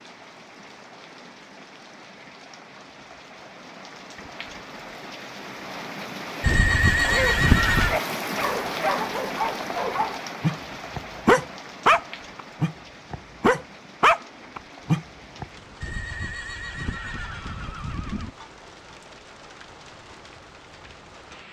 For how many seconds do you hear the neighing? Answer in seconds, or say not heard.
4 s.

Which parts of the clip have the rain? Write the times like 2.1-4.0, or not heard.
0.0-21.4.